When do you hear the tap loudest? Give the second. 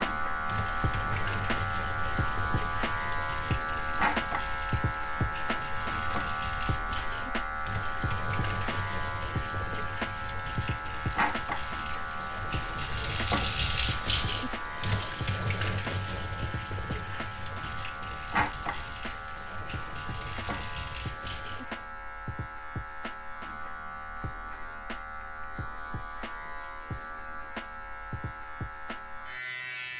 14 s.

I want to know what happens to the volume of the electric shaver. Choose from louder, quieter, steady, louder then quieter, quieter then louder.
quieter.